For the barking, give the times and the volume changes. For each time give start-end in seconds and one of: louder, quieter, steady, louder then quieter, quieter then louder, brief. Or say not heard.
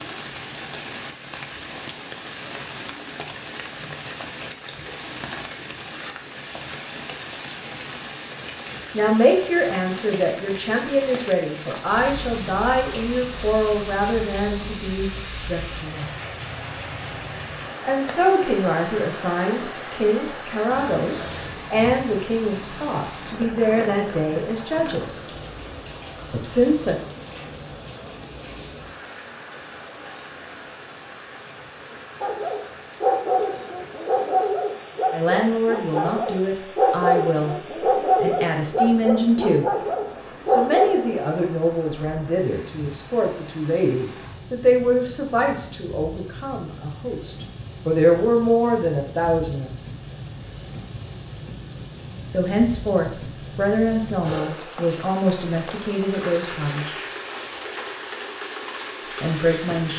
32.2-41.2 steady.